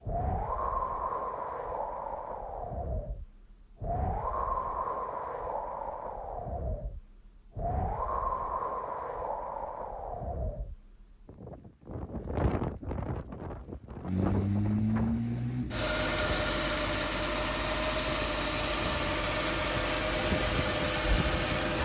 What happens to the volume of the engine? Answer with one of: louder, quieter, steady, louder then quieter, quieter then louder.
steady.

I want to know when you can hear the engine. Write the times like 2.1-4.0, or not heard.
14.1-21.7.